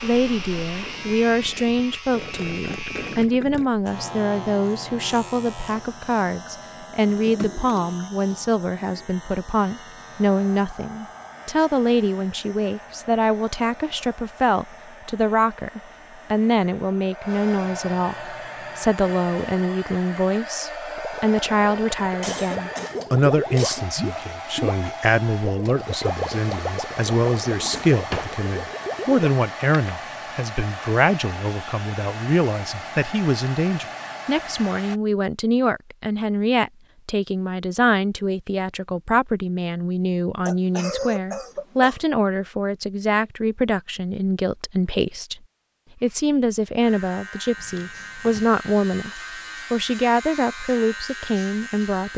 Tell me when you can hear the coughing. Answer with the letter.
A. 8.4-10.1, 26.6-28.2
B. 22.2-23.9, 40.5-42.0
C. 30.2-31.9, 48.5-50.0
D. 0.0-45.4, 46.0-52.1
B.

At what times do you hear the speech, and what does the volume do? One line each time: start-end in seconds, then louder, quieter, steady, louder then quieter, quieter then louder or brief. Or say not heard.
0.0-45.4 steady
46.0-52.1 steady.